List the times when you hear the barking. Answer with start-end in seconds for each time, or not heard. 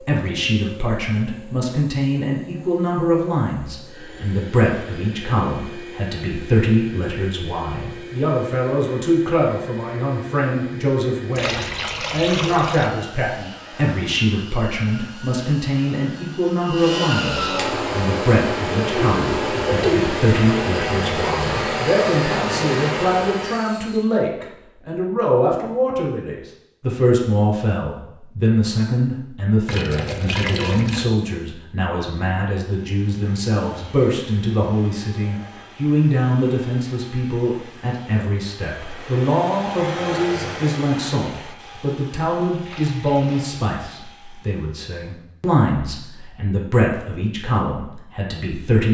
not heard.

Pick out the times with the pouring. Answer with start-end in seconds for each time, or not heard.
11.3-12.9, 29.6-31.1, 42.6-43.6.